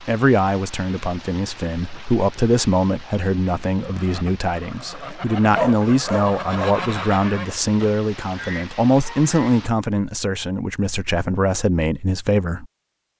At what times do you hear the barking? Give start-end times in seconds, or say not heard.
4.9-6.8.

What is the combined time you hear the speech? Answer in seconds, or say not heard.
13 s.